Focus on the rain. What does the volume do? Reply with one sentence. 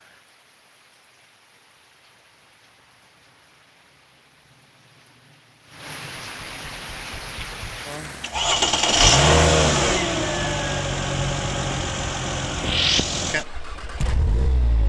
The loudness of the rain goes up.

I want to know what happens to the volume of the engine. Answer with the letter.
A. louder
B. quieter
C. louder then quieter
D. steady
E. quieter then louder
C.